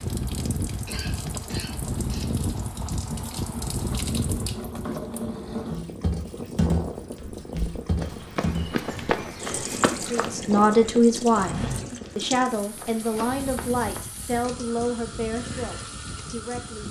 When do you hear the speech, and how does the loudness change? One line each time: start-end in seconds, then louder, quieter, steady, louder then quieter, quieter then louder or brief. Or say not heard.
10.1-16.8 quieter.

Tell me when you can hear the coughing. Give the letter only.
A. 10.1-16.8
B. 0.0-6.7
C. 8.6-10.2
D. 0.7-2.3
D.